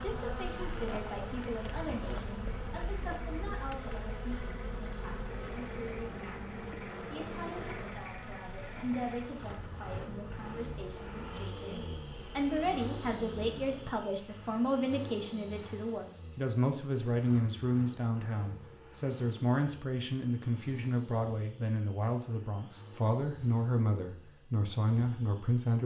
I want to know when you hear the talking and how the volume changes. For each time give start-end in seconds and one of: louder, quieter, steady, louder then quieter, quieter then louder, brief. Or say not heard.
0.0-25.8 louder.